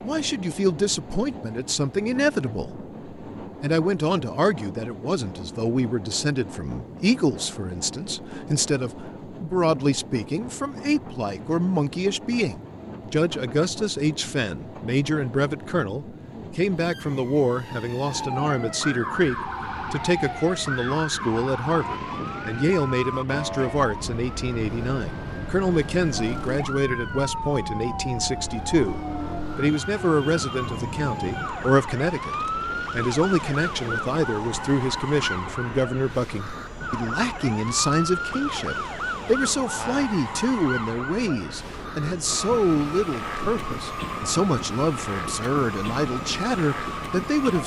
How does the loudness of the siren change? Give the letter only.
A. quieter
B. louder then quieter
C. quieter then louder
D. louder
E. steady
E.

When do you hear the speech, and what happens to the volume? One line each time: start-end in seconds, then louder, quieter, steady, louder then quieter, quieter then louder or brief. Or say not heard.
0.0-47.6 steady.